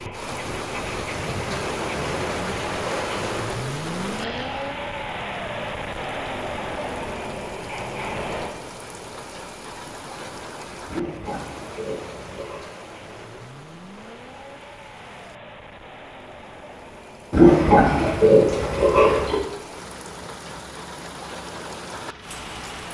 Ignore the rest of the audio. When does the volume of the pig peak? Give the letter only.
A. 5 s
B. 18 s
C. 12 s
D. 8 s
B.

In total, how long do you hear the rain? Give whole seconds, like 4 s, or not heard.
23 s.